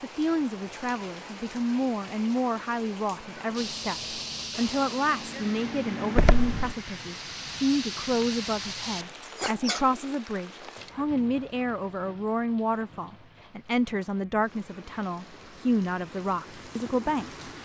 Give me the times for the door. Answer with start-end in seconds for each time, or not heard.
6.2-6.8.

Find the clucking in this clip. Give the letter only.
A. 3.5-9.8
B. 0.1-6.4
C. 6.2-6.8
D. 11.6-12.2
A.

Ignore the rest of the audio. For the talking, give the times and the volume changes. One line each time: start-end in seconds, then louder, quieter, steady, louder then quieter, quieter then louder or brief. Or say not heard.
0.0-17.4 steady.